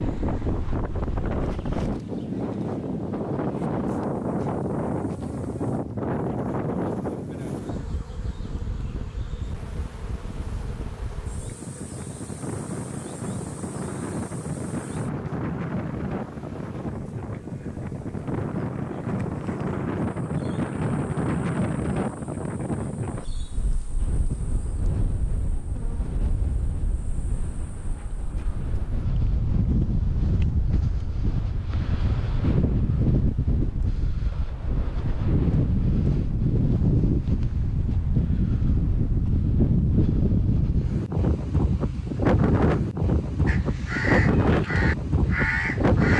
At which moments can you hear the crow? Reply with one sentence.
You can hear the crow from 43.5 to 46.1 s.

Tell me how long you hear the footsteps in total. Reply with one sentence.
The footsteps can't be heard in this clip.